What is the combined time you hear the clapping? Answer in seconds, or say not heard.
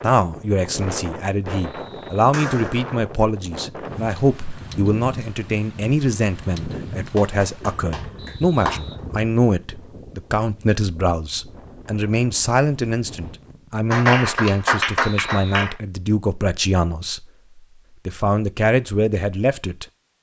4 s.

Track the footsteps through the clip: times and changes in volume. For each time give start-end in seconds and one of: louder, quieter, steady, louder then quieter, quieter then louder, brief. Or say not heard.
not heard.